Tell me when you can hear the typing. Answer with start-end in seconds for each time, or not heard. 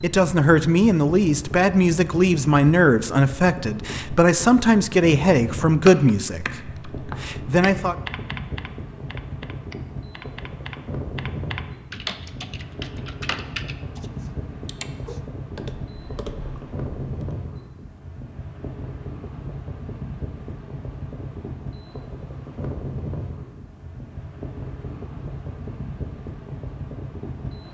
5.8-17.4.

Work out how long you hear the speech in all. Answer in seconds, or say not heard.
8 s.